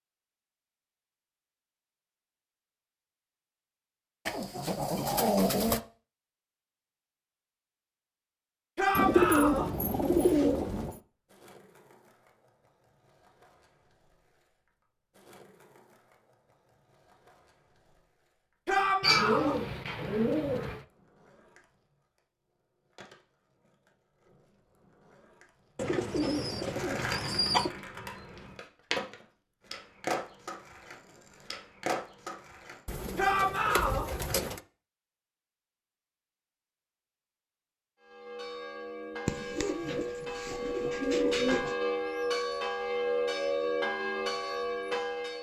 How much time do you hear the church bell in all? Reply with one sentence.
You can hear the church bell for 7 seconds altogether.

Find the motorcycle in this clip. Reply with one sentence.
You can't hear the motorcycle here.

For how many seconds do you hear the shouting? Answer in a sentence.
The shouting can be heard for 3 seconds in total.